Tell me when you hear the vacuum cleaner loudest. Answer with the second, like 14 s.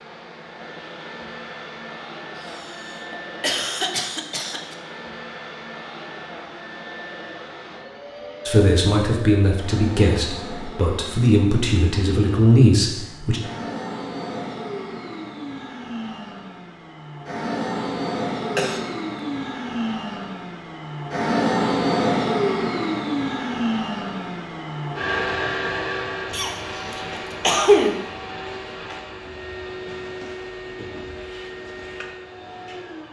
22 s.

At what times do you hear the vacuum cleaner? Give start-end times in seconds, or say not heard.
0.0-33.0.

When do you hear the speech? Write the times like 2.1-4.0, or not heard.
8.4-13.4.